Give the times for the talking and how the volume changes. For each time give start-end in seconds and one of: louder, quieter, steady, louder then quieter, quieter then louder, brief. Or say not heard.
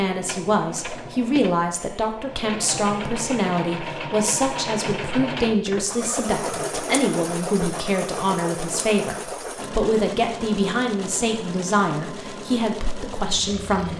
0.0-13.9 steady.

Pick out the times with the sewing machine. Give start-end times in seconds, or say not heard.
0.0-13.9.